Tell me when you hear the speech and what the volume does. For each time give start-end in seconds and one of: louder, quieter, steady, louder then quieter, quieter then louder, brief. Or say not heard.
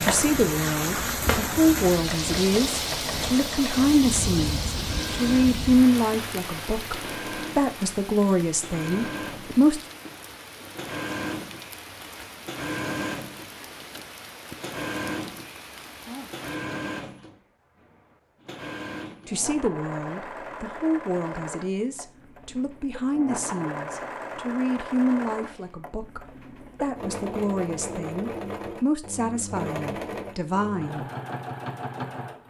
0.0-9.8 steady
19.2-31.1 steady.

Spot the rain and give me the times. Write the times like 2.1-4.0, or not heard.
0.0-16.6.